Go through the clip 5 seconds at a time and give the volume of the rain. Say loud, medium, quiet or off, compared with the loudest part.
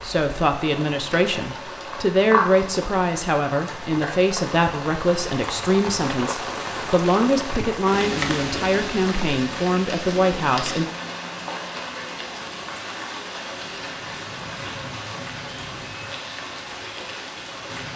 loud, loud, loud, medium.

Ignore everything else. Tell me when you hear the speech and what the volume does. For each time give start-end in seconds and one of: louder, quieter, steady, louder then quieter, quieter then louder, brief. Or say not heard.
0.0-10.8 steady.